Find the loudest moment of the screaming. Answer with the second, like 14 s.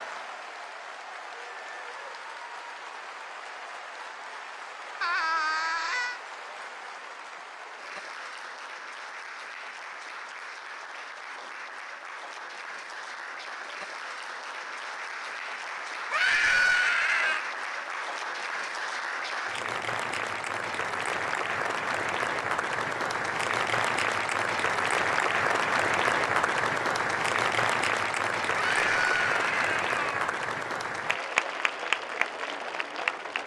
17 s.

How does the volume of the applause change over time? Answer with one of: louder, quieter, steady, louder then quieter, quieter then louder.
louder.